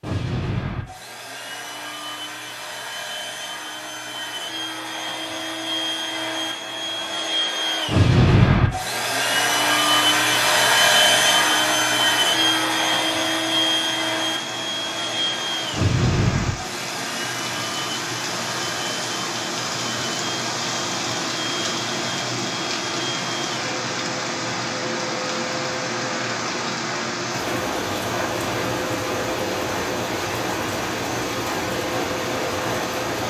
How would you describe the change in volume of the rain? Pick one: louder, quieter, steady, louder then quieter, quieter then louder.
louder.